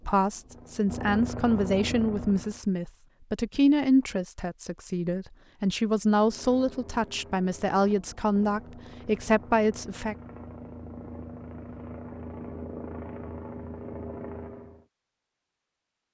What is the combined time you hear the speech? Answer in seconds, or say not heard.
10 s.